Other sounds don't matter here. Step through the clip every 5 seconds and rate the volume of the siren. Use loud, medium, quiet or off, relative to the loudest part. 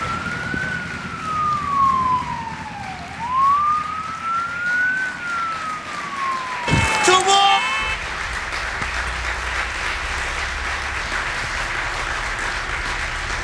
loud, medium, quiet.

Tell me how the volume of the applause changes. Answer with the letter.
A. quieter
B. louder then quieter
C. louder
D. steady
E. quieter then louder
C.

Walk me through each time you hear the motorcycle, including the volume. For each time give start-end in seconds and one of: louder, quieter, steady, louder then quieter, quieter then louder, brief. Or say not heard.
not heard.